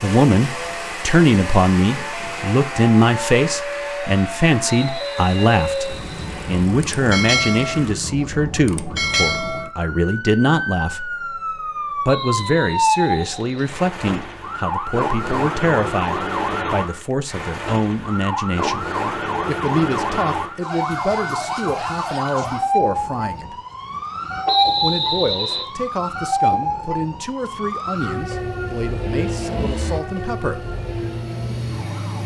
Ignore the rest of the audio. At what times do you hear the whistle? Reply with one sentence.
The whistle can be heard from 4.7 to 6.7 s, from 12.1 to 13.8 s and from 24.4 to 25.6 s.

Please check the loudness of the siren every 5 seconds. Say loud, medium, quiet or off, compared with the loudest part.
medium, loud, loud, loud, loud, loud, medium.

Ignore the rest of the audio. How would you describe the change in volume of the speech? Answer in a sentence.
The loudness of the speech goes down.